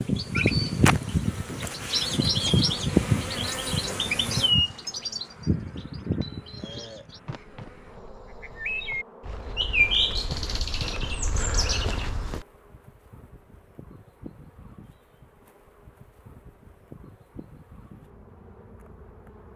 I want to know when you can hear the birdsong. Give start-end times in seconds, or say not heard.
0.0-12.4.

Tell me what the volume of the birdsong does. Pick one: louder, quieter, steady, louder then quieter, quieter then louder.
quieter then louder.